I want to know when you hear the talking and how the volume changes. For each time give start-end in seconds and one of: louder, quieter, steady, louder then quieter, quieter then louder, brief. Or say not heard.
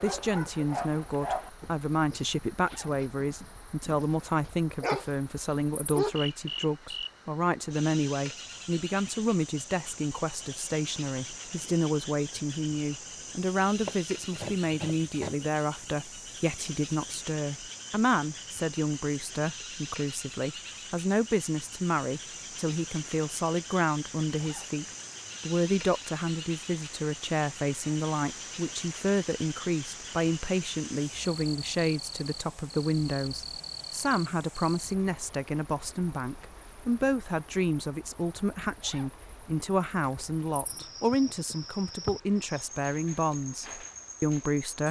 0.0-44.8 steady.